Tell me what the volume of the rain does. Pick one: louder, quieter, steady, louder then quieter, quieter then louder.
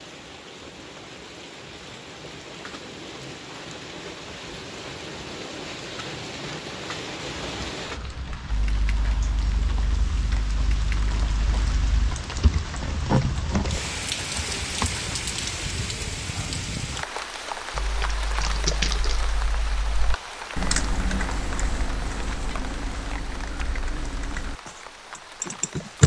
louder then quieter.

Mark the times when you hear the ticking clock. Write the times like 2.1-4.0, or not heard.
not heard.